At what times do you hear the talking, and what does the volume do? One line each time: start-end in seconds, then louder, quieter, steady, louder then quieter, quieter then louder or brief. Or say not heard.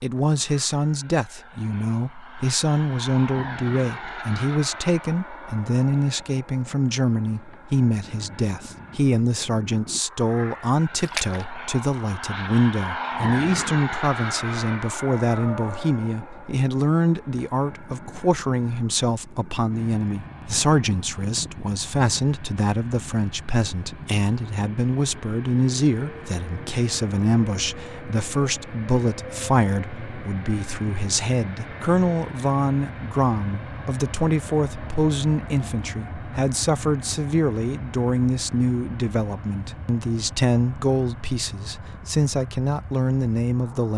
0.0-43.9 steady.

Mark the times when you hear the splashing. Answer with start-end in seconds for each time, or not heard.
11.0-11.6.